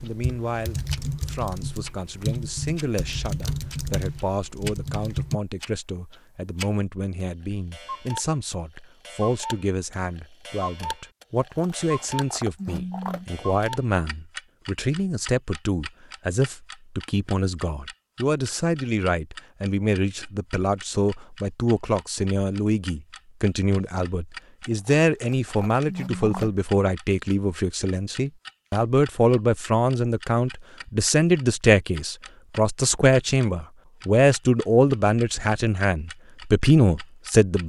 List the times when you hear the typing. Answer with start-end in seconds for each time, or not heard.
0.0-5.4.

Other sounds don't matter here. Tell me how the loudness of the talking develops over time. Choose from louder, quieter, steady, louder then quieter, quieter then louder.
louder.